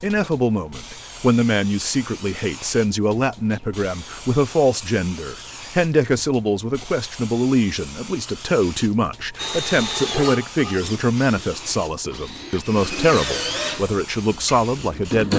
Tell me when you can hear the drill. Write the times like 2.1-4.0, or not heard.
9.3-15.3.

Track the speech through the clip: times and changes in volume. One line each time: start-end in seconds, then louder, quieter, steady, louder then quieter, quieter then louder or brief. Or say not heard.
0.0-15.3 steady.